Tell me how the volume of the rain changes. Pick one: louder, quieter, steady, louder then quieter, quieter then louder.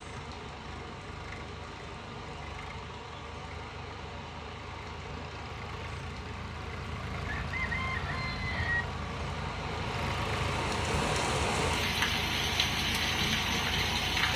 louder.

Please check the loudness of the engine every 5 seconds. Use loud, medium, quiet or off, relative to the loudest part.
medium, loud, loud.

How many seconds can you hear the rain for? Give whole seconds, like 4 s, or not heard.
14 s.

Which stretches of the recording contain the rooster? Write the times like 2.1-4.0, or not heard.
7.3-8.8.